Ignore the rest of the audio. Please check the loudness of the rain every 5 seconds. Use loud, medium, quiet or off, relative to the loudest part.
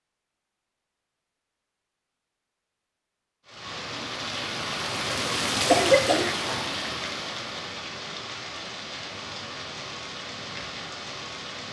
loud, loud, medium.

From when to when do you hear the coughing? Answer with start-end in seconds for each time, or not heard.
5.5-6.7.